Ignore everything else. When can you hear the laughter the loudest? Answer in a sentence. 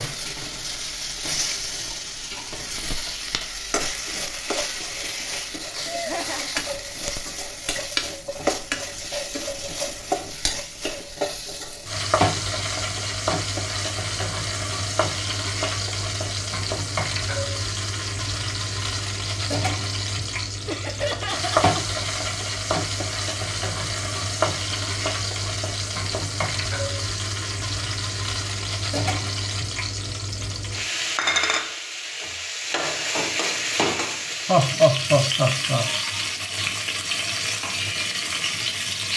The loudest moment of the laughter is at 35 seconds.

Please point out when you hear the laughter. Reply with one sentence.
You can hear the laughter from 5.8 to 7.0 s, from 20.6 to 21.9 s and from 34.5 to 35.9 s.